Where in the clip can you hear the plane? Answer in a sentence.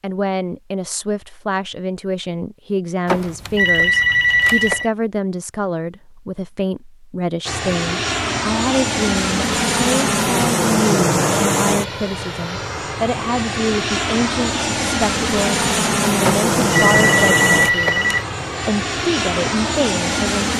You can hear the plane from 7.5 to 20.5 s.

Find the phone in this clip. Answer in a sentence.
You can hear the phone from 3.0 to 4.9 s and from 16.2 to 18.2 s.